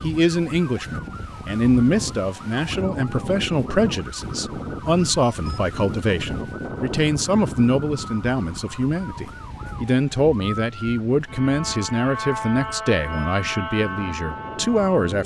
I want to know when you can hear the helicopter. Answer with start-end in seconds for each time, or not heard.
not heard.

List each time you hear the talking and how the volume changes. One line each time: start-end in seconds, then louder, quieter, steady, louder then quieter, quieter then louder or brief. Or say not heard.
0.0-15.2 steady.